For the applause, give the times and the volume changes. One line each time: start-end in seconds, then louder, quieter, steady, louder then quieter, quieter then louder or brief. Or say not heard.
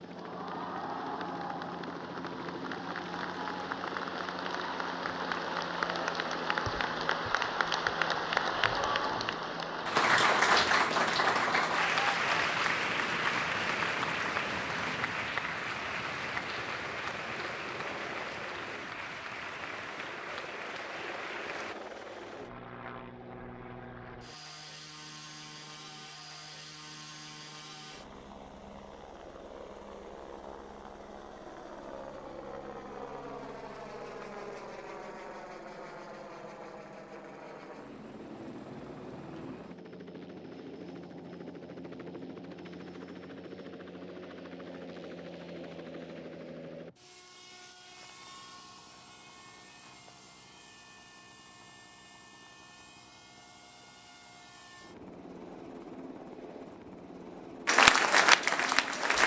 0.0-21.8 louder then quieter
57.6-59.2 brief.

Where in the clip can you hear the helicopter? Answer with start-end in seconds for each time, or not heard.
0.0-59.2.